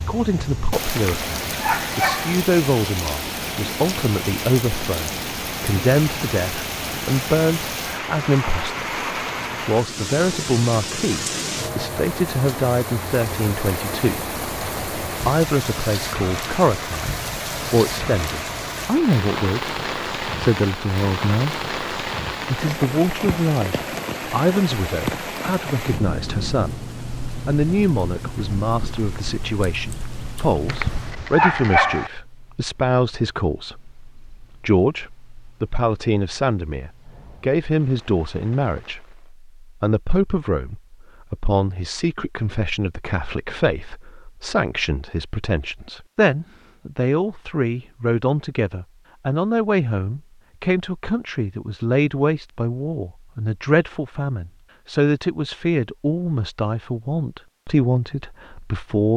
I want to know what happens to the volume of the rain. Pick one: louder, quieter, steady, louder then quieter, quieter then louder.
quieter.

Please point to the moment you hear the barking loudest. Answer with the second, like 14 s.
32 s.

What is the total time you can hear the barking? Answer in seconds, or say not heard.
3 s.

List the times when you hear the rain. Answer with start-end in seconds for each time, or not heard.
0.0-39.4.